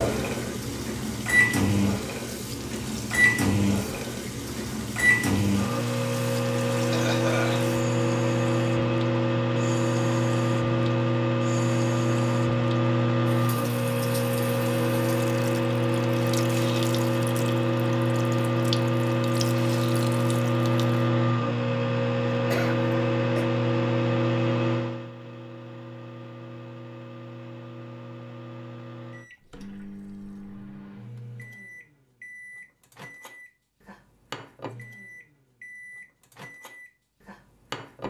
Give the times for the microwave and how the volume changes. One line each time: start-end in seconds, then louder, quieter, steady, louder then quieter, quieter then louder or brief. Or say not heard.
0.0-38.0 quieter.